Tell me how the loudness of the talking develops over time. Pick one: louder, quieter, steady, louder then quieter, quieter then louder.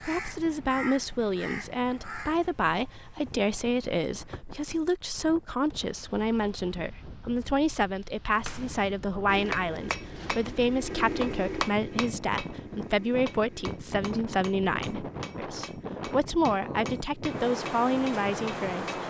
steady.